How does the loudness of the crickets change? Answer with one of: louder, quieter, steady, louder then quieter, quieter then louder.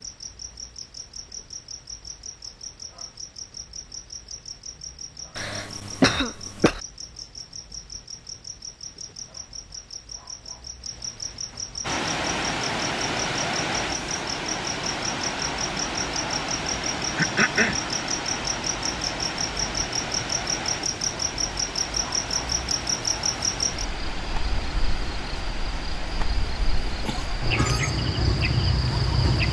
louder.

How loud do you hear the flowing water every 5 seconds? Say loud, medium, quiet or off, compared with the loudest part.
off, off, loud, loud, medium, medium.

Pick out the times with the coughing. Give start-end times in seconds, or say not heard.
5.3-6.8, 17.1-17.8, 27.0-28.0.